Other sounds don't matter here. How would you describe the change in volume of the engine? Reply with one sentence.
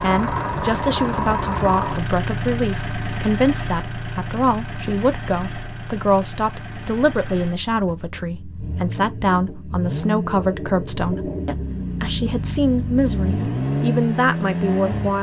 The volume of the engine goes down, then up.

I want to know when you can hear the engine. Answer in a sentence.
You can hear the engine from 0.0 to 15.1 s.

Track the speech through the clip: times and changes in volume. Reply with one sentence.
The speech can be heard from 0.0 to 15.1 s, at a steady volume.